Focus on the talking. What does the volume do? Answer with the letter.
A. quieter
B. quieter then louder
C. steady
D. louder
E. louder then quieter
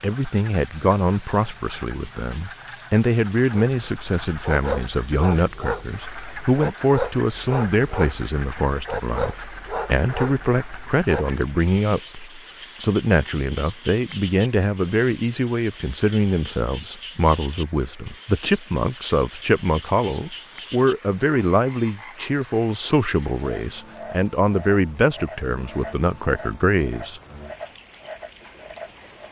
C.